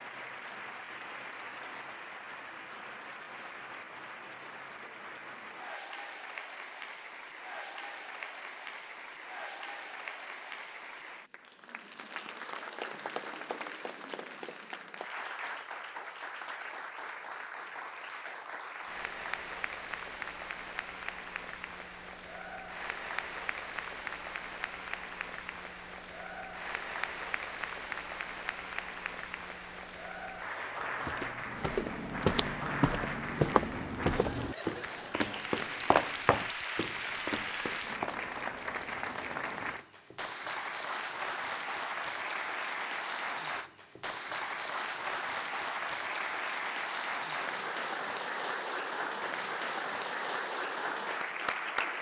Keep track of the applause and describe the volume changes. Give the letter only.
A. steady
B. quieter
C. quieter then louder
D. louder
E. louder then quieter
D.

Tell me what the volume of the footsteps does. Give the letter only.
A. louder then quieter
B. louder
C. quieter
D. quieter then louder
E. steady
C.